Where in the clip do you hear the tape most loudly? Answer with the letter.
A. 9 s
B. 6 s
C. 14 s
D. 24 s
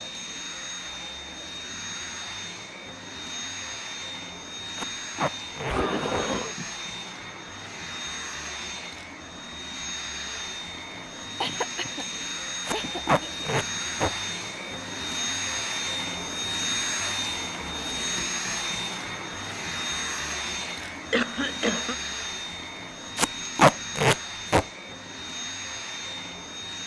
D.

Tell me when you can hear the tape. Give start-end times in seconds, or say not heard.
4.8-6.2, 12.7-14.1, 23.1-24.6.